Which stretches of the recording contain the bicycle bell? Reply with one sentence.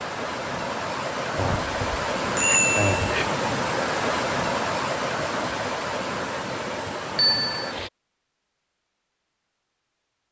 The bicycle bell can be heard from 1.4 to 3.2 s and from 7.2 to 7.7 s.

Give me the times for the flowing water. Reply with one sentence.
The flowing water can be heard from 0.0 to 7.9 s.